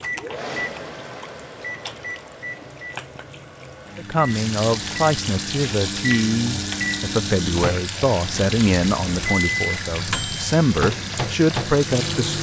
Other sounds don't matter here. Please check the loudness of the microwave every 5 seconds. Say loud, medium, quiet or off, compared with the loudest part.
medium, loud, loud.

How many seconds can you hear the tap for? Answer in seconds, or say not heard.
12 s.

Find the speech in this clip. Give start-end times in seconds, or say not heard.
4.0-12.3.